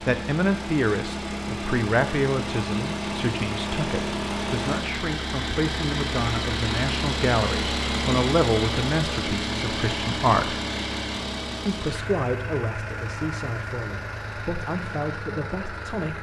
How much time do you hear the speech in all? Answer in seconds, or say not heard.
15 s.